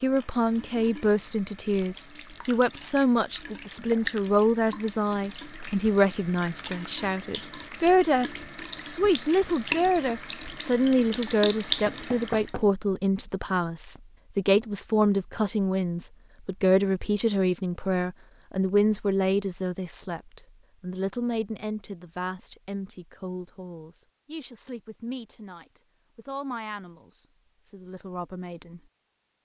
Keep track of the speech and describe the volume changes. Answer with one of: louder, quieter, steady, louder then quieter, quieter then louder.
quieter.